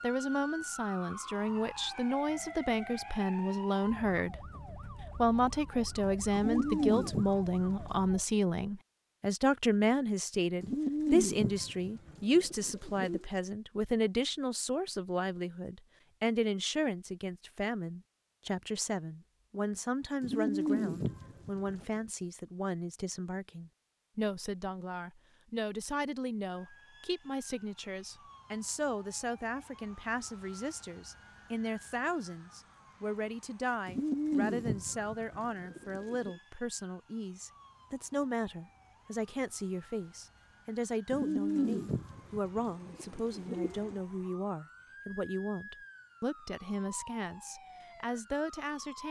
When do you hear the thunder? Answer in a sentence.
The thunder can't be heard in this clip.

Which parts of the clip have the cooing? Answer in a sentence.
You can hear the cooing from 6.3 to 8.0 s, from 10.6 to 13.2 s, from 20.2 to 21.9 s, from 33.9 to 36.4 s and from 41.1 to 44.0 s.